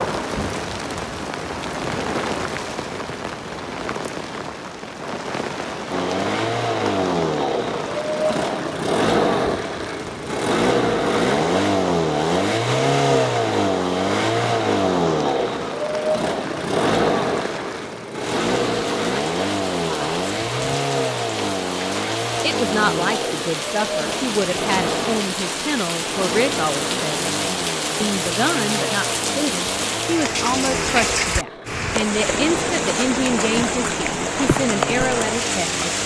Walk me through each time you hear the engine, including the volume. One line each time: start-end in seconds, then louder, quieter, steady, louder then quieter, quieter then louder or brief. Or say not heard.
5.9-36.0 quieter.